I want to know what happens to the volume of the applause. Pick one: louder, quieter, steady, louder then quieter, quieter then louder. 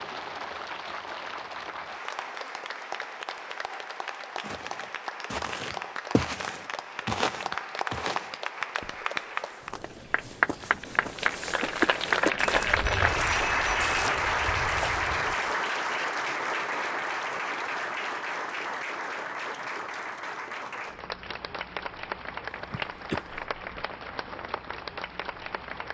louder then quieter.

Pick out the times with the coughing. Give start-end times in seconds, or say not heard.
22.4-23.3.